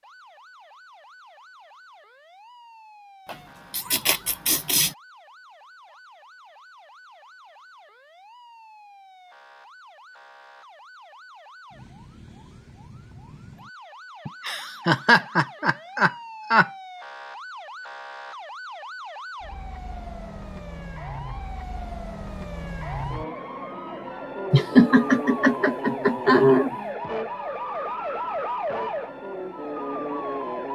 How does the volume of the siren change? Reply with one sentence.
The loudness of the siren goes up.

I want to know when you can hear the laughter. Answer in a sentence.
You can hear the laughter from 3.2 to 5.0 s, from 14.2 to 16.7 s and from 24.5 to 26.8 s.